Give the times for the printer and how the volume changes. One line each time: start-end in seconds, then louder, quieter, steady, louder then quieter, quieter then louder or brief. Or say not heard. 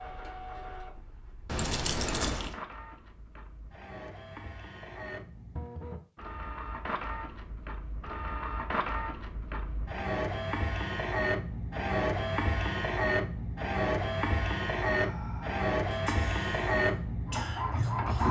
0.0-18.2 louder.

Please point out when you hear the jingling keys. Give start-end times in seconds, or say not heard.
1.4-2.5.